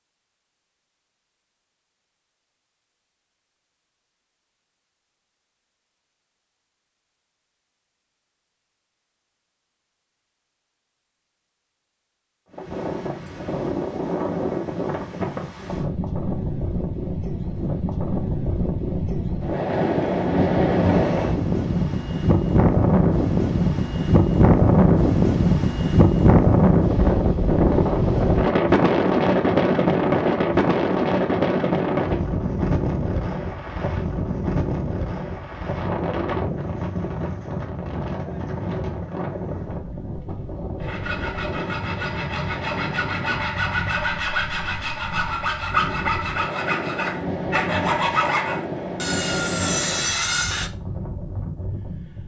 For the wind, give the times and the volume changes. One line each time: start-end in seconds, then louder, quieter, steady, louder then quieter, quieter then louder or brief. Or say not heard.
12.5-52.2 louder then quieter.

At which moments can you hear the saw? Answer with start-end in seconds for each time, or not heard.
40.8-50.7.